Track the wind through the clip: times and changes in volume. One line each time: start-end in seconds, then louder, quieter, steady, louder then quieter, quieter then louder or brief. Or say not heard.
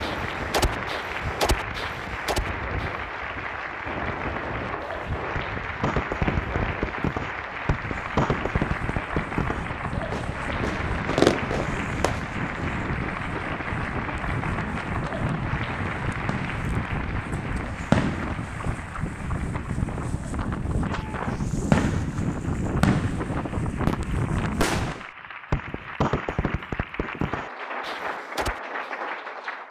0.0-25.1 louder.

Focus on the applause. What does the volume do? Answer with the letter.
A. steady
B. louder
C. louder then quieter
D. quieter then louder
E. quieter
D.